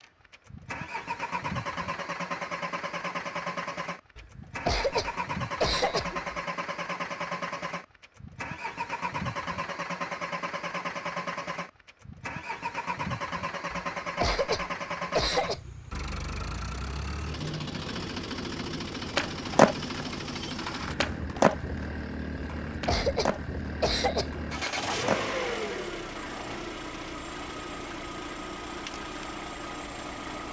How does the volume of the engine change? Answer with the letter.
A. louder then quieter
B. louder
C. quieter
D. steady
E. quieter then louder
D.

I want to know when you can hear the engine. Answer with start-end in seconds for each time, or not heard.
0.0-30.4.